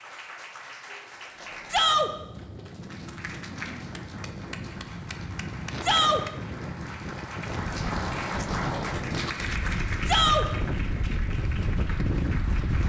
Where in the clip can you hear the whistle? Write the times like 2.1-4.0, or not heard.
not heard.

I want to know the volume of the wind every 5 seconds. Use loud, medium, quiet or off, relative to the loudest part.
medium, loud, loud.